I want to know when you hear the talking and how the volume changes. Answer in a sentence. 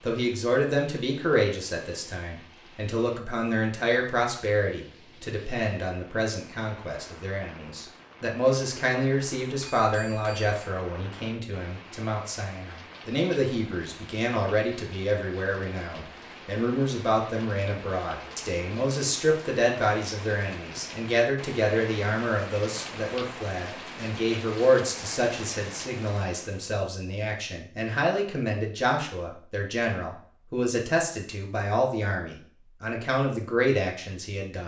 The talking can be heard from 0.0 to 34.6 s, at a steady volume.